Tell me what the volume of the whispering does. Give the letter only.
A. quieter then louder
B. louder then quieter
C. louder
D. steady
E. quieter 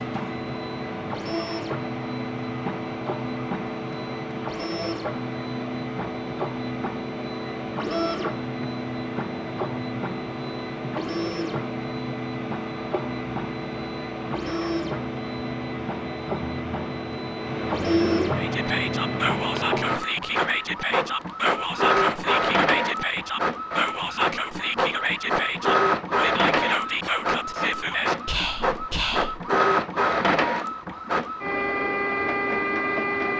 D.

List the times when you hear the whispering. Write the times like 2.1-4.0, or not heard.
18.4-29.5.